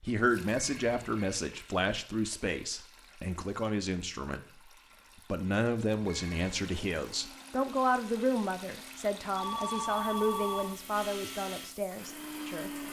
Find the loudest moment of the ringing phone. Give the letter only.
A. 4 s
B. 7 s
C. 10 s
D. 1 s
C.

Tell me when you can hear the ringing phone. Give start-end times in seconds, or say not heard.
0.5-1.1, 6.0-6.6, 9.3-10.8.